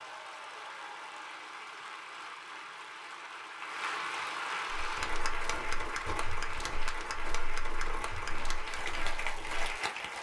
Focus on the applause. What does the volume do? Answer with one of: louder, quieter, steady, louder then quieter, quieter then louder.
louder.